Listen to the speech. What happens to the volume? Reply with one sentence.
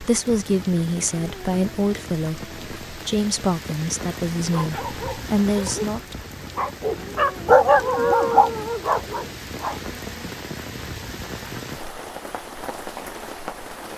The loudness of the speech stays about the same.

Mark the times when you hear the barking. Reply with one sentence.
You can hear the barking from 4.4 to 9.8 s.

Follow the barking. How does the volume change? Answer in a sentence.
The volume of the barking goes up, then down.